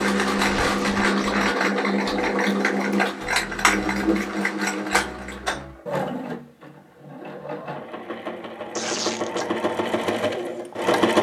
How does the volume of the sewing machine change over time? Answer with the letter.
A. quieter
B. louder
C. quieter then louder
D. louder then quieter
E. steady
C.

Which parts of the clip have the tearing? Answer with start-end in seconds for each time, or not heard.
0.3-1.0, 8.8-9.4.